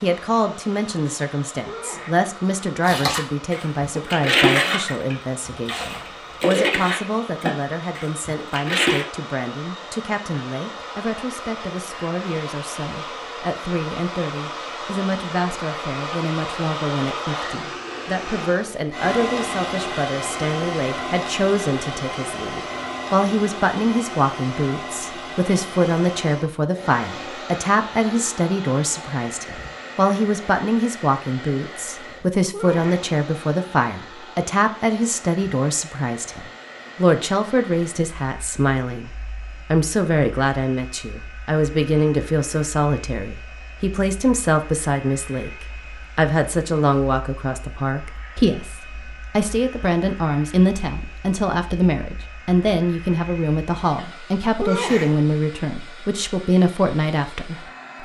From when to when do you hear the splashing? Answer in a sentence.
The splashing can be heard from 2.8 to 9.1 s.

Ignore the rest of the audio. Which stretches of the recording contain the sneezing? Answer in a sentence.
The sneezing can be heard from 1.6 to 2.3 s, from 32.5 to 33.0 s and from 54.6 to 55.3 s.